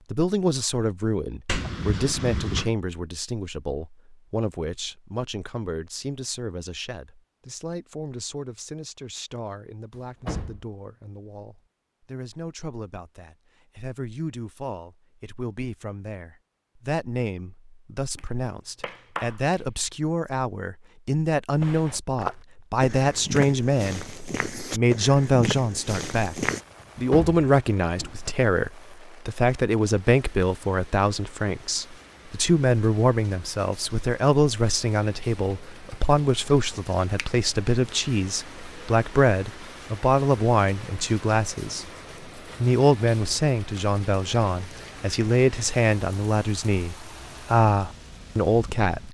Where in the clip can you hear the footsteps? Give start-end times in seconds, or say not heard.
21.6-26.6.